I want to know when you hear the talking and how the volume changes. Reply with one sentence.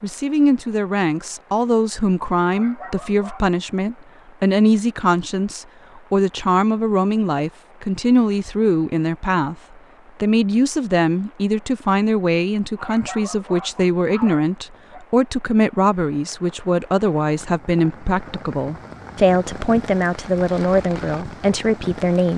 The talking can be heard from 0.0 to 9.6 s, at a steady volume; and from 10.2 to 22.3 s, at a steady volume.